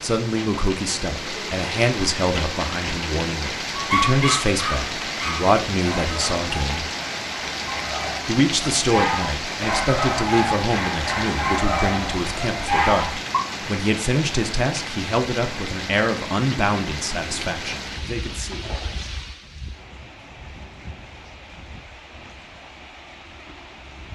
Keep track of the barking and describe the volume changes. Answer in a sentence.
The volume of the barking goes down, then up.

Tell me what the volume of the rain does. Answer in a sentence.
The volume of the rain goes down.